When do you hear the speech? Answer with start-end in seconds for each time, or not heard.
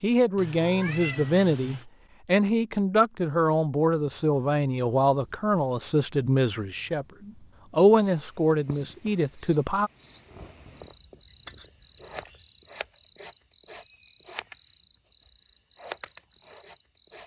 0.0-9.9.